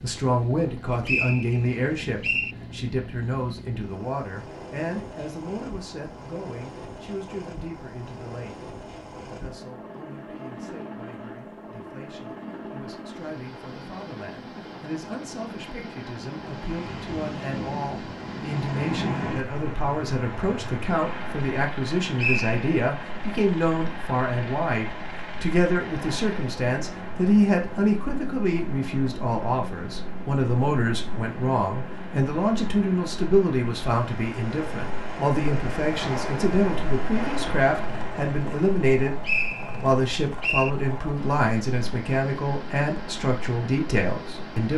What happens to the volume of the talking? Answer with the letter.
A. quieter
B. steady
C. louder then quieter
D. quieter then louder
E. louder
D.